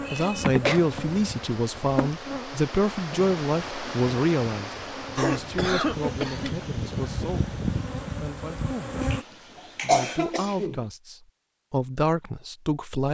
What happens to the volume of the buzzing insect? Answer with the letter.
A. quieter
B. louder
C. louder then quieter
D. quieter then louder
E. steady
D.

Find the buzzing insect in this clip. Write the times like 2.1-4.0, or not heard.
0.0-9.2.